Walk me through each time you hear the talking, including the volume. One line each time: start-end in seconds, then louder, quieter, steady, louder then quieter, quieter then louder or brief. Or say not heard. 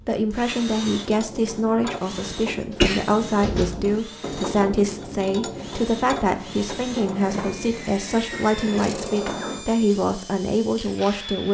0.1-11.4 steady.